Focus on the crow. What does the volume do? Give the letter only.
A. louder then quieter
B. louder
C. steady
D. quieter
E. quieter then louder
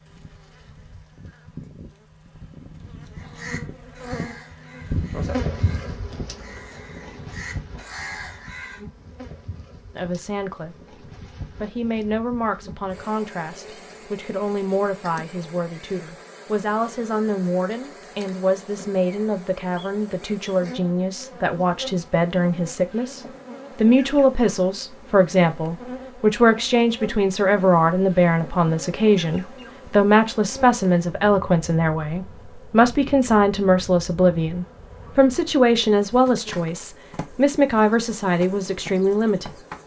E.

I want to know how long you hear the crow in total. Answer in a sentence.
You can hear the crow for 6 seconds altogether.